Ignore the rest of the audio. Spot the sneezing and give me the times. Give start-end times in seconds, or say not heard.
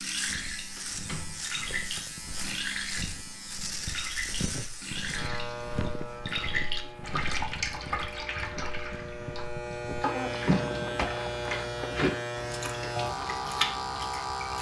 not heard.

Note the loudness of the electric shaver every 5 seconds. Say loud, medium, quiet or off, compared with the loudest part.
medium, medium, loud.